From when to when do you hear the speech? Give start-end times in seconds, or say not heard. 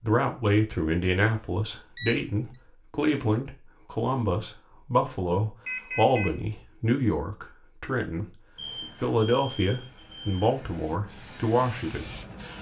0.0-8.2, 9.0-12.1.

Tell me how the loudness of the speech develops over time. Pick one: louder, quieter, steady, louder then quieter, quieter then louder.
steady.